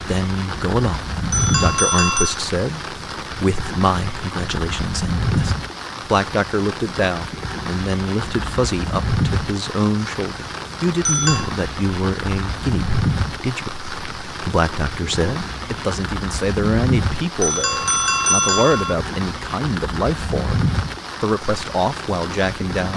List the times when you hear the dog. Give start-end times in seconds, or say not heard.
not heard.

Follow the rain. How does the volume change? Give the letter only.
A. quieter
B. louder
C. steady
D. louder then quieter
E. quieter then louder
C.